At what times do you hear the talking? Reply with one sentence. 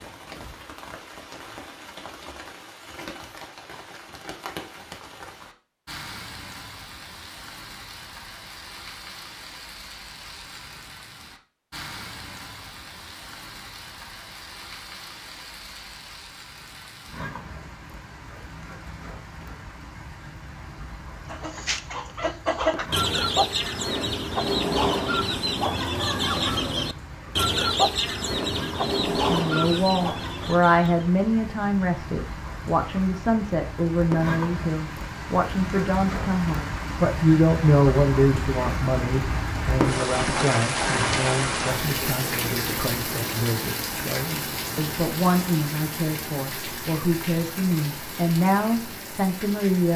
The talking can be heard from 29.2 to 49.9 s.